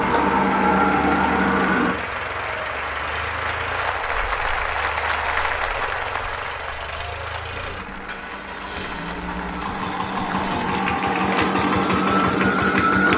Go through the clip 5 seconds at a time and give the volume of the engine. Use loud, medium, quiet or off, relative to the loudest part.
medium, medium, loud.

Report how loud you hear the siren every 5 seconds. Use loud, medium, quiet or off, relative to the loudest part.
loud, quiet, loud.